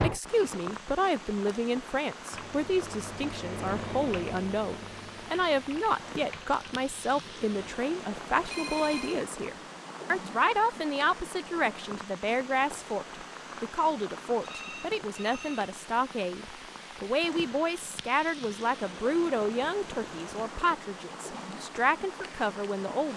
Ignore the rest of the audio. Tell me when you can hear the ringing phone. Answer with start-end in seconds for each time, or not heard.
8.5-9.2, 14.4-15.8.